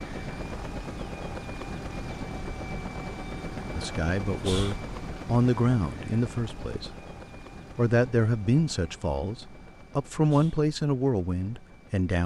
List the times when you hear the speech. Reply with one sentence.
You can hear the speech from 3.8 to 7.0 s and from 7.8 to 12.2 s.